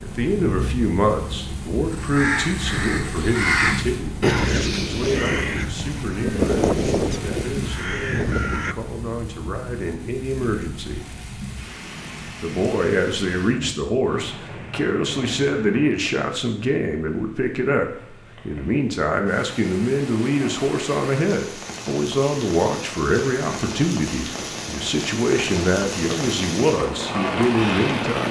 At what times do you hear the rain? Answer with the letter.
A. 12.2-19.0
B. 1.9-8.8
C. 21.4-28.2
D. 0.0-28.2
D.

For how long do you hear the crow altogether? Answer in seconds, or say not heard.
7 s.